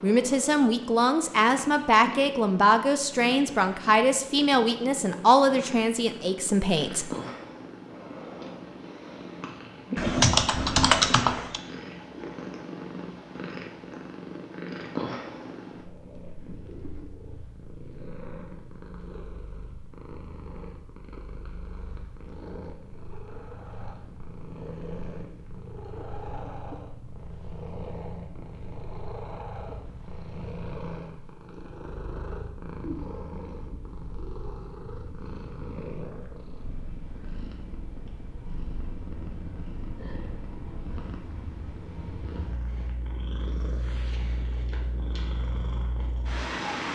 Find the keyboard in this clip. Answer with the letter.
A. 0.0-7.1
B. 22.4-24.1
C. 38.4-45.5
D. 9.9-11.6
D.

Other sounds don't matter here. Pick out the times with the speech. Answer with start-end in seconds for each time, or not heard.
0.0-7.1.